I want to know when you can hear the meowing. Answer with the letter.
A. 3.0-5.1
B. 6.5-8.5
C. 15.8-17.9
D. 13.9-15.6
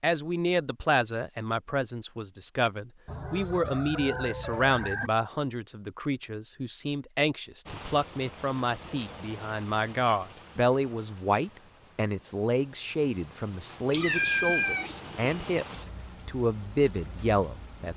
D.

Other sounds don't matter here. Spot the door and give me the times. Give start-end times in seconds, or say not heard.
not heard.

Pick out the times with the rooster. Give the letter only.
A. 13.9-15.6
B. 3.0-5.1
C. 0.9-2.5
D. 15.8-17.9
B.